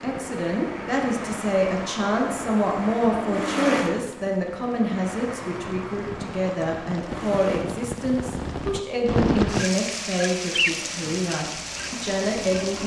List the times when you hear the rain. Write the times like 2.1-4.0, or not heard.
0.0-12.8.